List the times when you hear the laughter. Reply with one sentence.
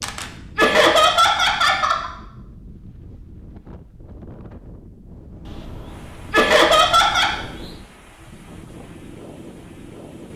The laughter can be heard from 0.6 to 2.1 s and from 6.3 to 7.3 s.